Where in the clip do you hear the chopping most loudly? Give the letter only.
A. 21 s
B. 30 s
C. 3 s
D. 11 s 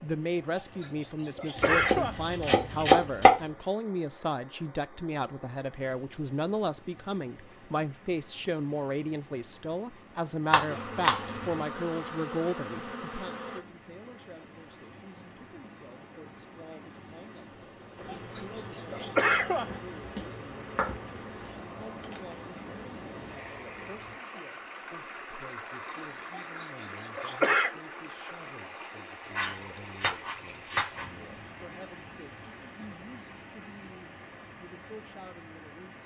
C.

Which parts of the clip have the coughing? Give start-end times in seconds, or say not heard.
0.6-2.1, 18.1-19.7, 26.3-27.7.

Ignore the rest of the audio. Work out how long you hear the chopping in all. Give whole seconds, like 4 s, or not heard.
6 s.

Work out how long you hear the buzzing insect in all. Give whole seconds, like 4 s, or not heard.
9 s.